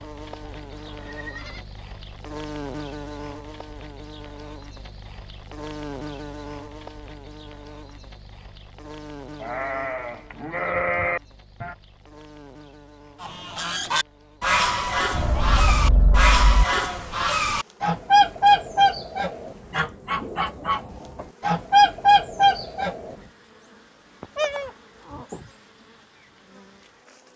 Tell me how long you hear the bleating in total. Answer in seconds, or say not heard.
6 s.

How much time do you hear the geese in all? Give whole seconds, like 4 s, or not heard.
10 s.